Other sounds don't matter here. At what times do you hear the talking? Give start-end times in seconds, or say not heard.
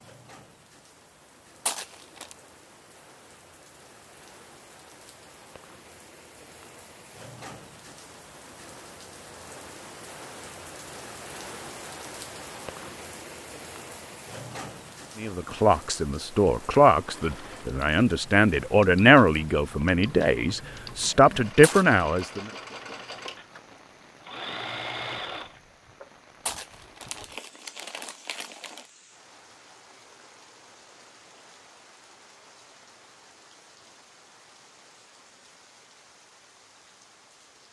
15.2-22.5.